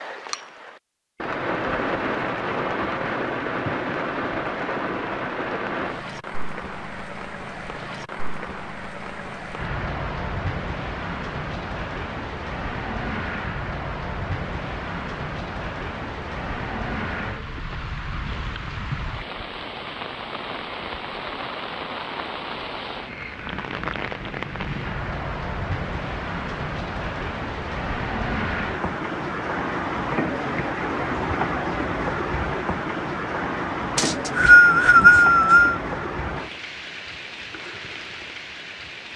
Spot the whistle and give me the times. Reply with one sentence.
You can hear the whistle from 34.0 to 35.8 s.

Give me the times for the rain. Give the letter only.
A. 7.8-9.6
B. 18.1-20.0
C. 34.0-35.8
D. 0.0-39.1
D.